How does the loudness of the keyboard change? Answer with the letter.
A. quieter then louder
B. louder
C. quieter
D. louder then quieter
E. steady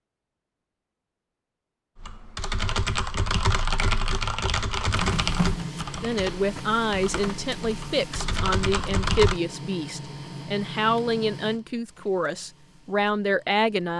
A.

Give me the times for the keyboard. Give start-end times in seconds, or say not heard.
1.9-9.4.